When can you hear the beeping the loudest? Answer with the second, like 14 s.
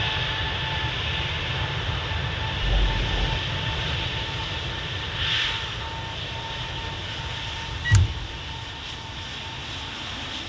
8 s.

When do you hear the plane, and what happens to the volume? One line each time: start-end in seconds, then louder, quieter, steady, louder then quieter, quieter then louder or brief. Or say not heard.
0.0-10.4 quieter.